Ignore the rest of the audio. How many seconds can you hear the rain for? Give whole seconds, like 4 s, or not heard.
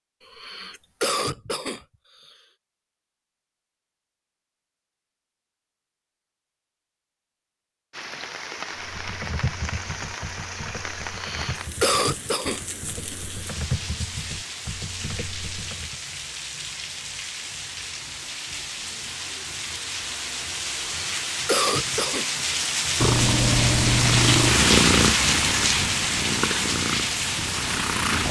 20 s.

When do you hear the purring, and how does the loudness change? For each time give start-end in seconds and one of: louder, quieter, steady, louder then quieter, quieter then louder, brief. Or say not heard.
22.9-28.2 quieter.